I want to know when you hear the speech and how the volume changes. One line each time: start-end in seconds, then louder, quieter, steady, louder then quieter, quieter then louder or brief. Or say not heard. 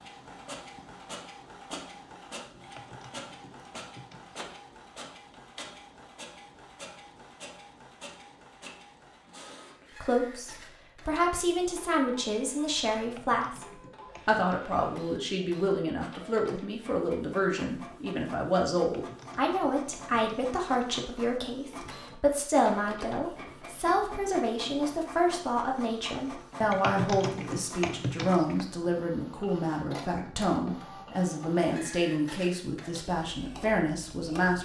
10.0-34.6 steady.